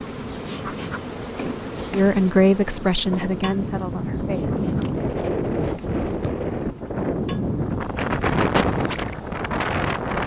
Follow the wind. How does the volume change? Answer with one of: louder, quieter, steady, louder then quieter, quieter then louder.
louder.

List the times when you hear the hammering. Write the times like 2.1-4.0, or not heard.
not heard.